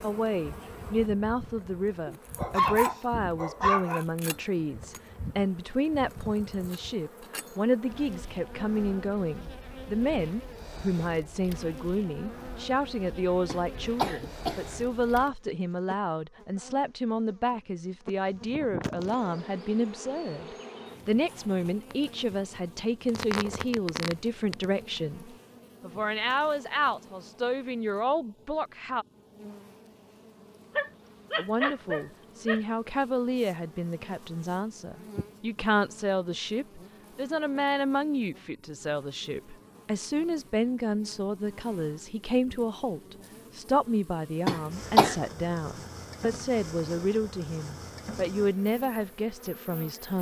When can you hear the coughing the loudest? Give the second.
45 s.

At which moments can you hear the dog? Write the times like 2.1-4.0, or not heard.
2.0-4.0, 30.8-32.6.